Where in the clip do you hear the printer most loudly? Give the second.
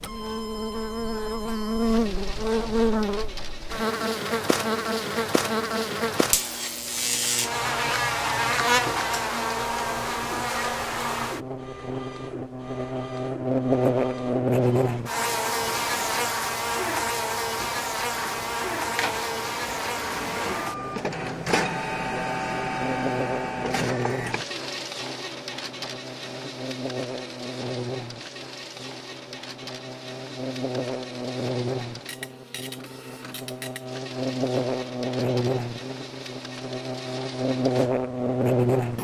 22 s.